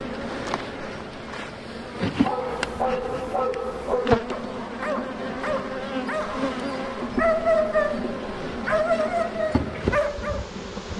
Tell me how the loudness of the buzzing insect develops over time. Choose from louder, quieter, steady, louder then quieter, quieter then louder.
steady.